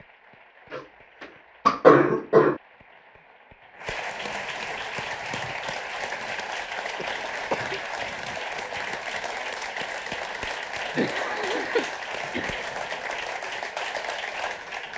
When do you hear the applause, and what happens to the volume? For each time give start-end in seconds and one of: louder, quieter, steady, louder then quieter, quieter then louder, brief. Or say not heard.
0.0-14.9 louder.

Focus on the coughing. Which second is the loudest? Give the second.
2 s.